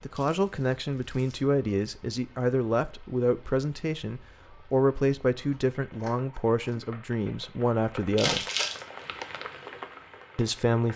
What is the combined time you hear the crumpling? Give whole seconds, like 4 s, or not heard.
2 s.